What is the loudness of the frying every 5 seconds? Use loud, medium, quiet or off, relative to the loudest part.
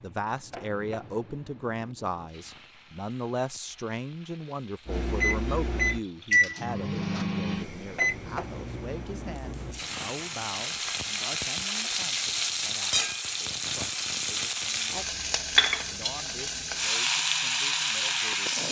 quiet, quiet, loud, loud.